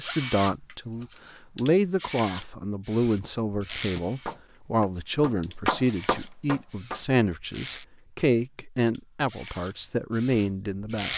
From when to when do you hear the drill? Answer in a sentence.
The drill can be heard from 0.0 to 7.8 s and from 8.8 to 11.1 s.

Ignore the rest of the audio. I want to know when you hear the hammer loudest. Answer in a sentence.
The volume of the hammer peaks at 6 seconds.